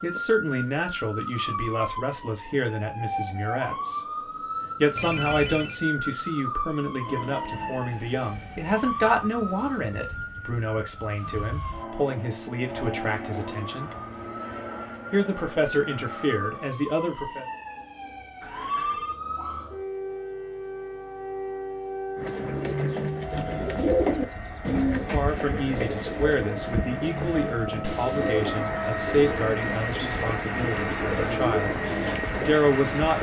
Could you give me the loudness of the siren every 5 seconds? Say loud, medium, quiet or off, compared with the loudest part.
loud, loud, medium, loud, loud, loud, loud.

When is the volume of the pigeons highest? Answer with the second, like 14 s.
24 s.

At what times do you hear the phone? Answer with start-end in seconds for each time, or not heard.
5.0-5.8, 18.4-19.2, 27.8-28.2.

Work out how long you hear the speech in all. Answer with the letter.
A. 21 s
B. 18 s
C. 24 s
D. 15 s
C.